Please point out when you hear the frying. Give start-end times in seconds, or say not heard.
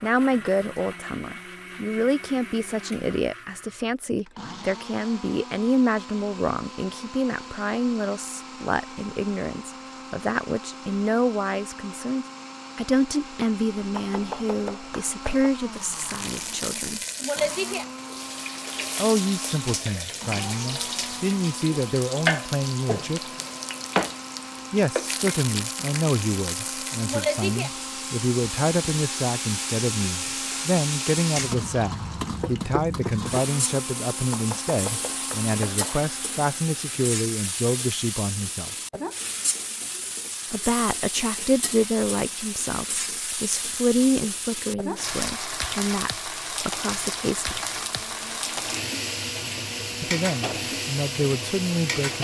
15.9-52.1.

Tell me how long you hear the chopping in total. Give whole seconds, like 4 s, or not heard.
3 s.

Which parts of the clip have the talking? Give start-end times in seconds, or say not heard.
0.0-17.0, 18.9-23.2, 24.7-38.7, 40.5-47.6, 50.0-52.1.